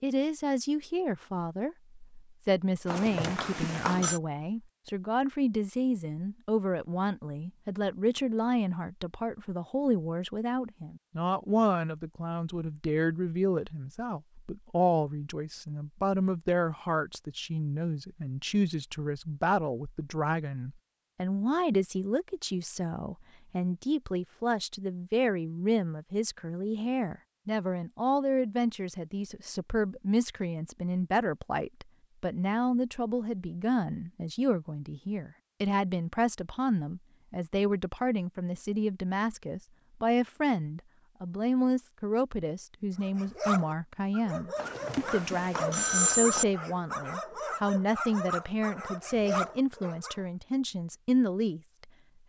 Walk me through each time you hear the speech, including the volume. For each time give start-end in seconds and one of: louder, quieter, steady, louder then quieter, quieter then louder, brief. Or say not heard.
0.0-51.6 steady.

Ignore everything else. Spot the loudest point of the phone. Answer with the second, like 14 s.
46 s.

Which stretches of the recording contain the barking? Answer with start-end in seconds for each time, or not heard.
43.0-50.2.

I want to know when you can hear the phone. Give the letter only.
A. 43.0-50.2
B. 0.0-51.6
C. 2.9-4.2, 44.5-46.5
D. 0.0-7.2
C.